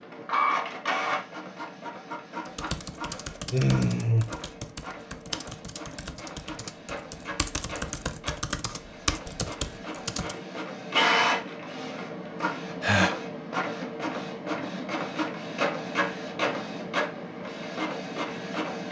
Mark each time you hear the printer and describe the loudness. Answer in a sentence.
You can hear the printer from 0.0 to 18.8 s, getting quieter then louder.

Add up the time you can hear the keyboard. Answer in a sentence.
You can hear the keyboard for 8 seconds altogether.